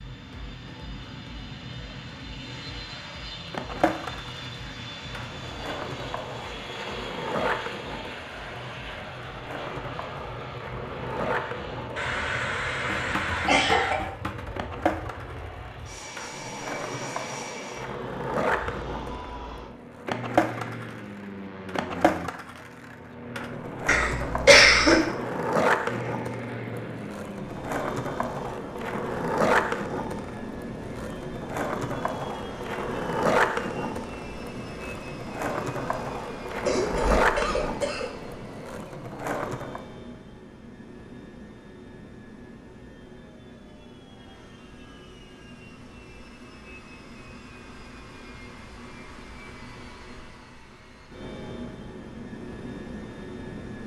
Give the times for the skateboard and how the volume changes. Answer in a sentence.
You can hear the skateboard from 3.5 to 39.9 s, getting louder.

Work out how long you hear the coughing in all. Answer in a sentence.
The coughing can be heard for 5 seconds in total.